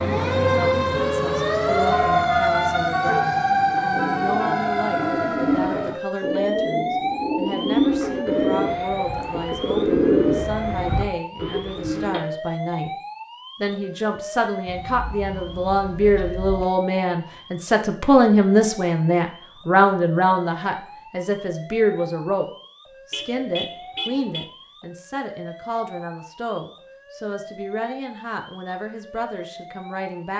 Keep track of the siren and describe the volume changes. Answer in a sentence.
The volume of the siren goes down.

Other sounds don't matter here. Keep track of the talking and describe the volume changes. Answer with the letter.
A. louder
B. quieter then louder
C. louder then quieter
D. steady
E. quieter
C.